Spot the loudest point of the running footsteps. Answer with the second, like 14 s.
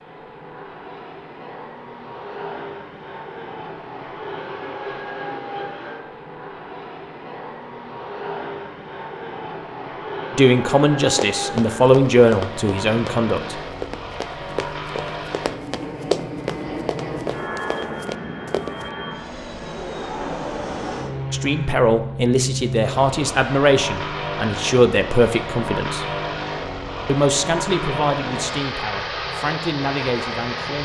16 s.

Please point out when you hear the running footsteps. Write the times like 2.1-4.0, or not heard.
11.2-18.9.